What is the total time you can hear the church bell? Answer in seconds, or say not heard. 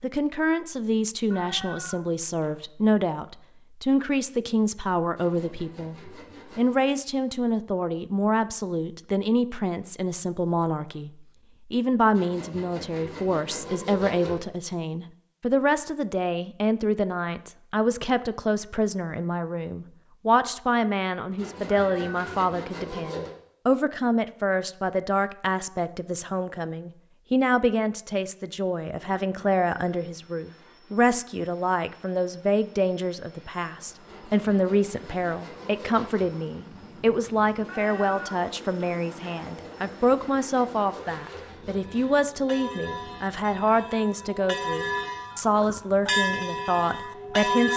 6 s.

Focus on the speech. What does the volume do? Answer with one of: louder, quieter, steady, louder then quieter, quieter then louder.
steady.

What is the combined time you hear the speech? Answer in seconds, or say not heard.
47 s.